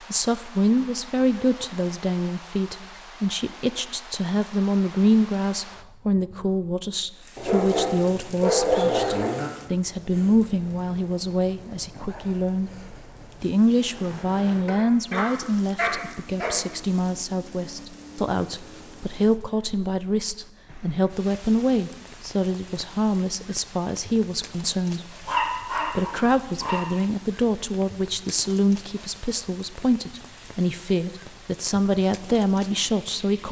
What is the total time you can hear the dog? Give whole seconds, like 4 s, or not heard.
6 s.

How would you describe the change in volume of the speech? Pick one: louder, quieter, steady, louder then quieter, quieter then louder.
steady.